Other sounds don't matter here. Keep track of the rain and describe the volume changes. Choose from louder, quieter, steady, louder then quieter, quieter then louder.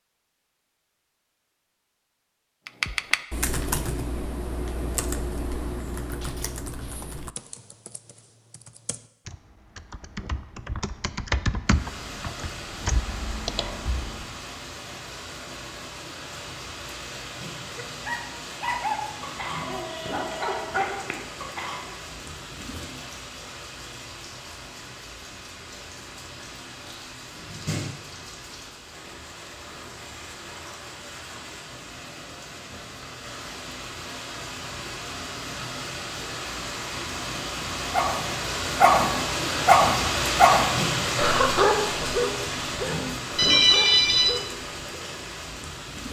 louder.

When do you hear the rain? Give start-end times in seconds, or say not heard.
11.7-46.0.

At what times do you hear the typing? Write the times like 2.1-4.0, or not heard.
2.6-14.3.